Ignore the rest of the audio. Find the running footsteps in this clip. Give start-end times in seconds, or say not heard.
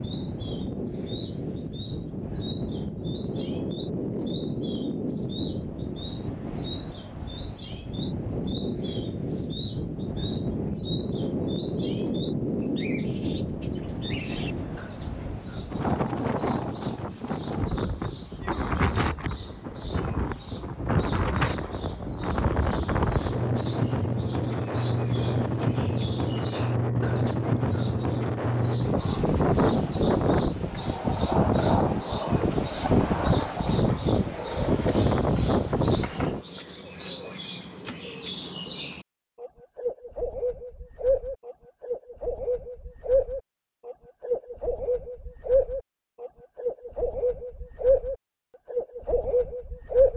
not heard.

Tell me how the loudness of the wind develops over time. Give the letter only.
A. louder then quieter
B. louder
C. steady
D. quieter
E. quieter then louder
B.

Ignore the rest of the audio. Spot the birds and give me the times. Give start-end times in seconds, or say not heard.
0.0-50.1.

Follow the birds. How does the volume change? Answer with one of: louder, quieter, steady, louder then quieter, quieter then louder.
louder.